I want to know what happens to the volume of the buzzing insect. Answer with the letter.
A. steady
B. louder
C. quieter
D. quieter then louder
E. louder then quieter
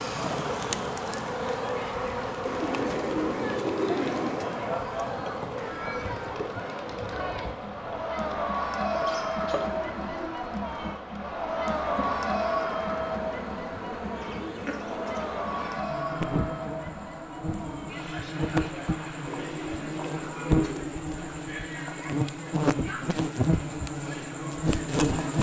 D.